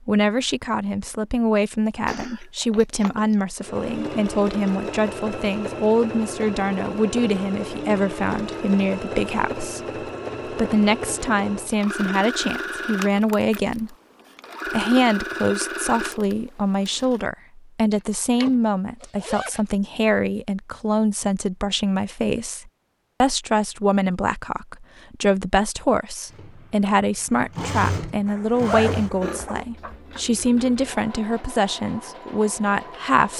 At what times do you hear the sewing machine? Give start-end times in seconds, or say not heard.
3.6-17.3, 26.2-33.3.